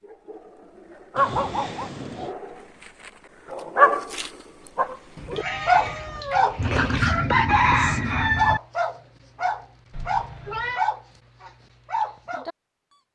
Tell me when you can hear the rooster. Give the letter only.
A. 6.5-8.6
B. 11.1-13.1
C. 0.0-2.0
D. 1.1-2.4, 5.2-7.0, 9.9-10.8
A.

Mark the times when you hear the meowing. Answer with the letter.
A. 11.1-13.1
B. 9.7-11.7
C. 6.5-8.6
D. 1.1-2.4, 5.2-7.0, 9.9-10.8
D.